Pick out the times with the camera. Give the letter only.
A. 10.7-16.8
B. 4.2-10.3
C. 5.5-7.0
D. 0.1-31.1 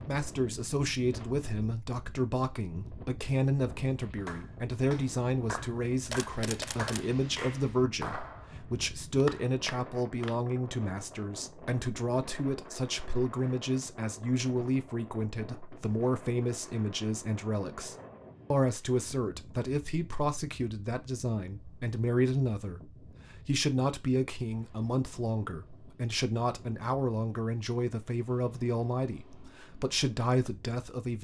C.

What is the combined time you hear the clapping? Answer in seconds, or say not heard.
6 s.